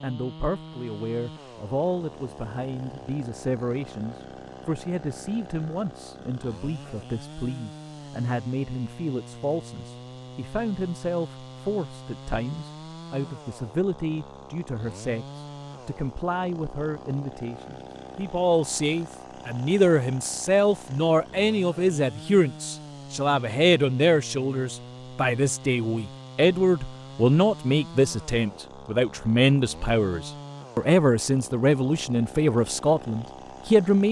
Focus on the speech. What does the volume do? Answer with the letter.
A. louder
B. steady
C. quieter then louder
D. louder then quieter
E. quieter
A.